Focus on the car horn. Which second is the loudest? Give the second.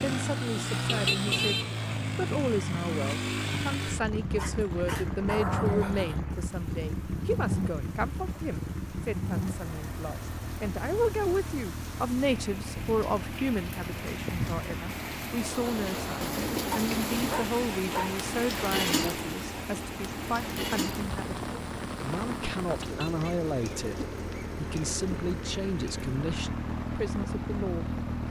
1 s.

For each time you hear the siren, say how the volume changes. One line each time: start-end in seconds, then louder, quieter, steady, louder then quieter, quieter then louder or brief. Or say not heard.
not heard.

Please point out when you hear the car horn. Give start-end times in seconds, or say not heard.
0.8-1.8, 22.8-23.2.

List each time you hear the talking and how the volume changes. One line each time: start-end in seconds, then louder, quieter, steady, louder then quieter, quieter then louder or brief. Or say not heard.
0.0-28.2 steady.